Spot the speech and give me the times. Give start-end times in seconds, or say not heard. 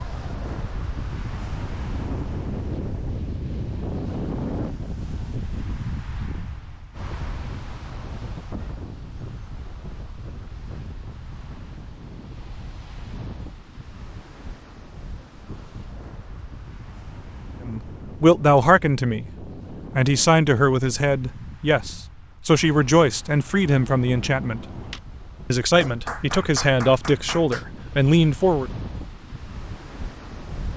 17.6-19.3, 19.9-24.6, 25.5-28.7.